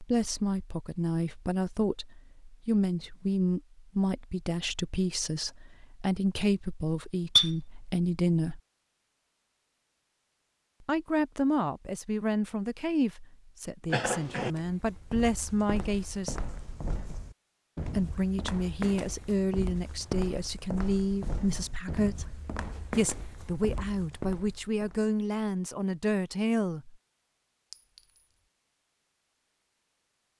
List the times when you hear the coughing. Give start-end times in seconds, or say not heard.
13.8-14.5.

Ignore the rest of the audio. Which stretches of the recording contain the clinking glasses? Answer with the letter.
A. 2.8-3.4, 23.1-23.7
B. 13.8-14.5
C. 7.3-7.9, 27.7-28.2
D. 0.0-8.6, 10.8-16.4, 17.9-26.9
C.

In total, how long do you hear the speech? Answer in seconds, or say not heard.
23 s.